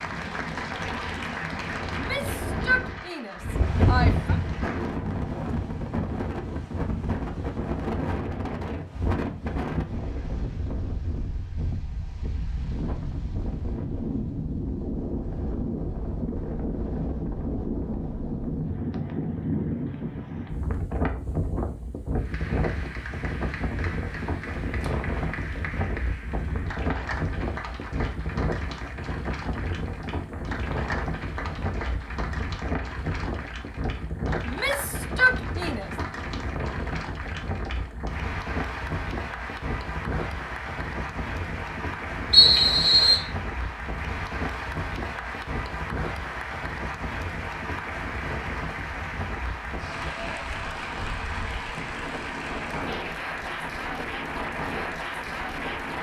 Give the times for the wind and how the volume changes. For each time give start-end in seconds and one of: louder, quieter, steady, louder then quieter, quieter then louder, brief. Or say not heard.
0.0-55.9 quieter.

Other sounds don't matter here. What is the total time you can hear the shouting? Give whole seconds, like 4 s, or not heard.
4 s.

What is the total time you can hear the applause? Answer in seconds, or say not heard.
39 s.